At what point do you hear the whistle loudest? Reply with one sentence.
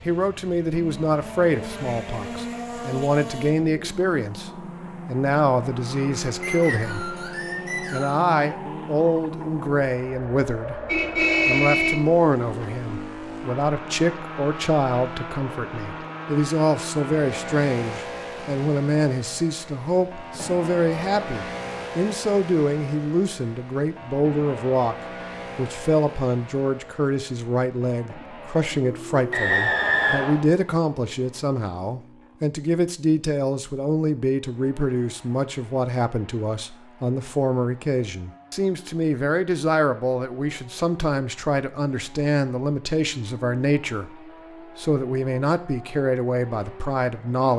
The loudest moment of the whistle is at 30 seconds.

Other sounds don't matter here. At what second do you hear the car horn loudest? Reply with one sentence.
The volume of the car horn peaks at 11 seconds.